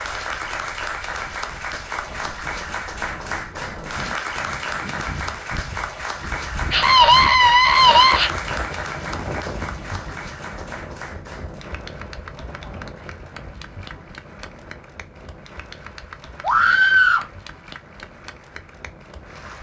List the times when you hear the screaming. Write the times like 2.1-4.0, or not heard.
6.7-8.3, 16.4-17.3.